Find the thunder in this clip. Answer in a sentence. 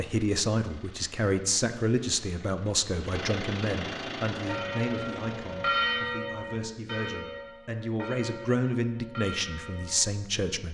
You can't hear the thunder here.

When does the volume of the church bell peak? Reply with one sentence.
The loudest moment of the church bell is at 6 seconds.